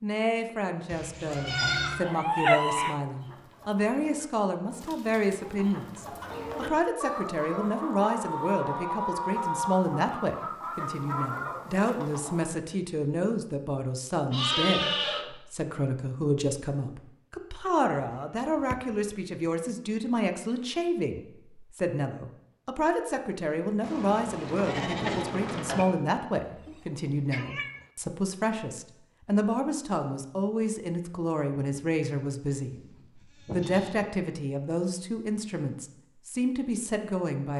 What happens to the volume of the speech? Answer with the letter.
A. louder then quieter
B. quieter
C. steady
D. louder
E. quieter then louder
C.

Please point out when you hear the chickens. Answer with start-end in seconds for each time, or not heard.
3.0-12.5.